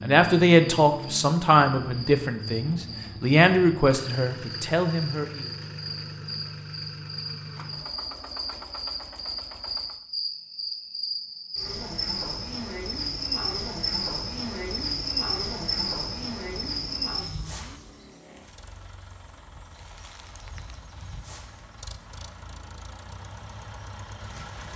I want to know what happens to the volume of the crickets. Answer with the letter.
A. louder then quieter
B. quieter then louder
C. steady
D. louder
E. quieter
A.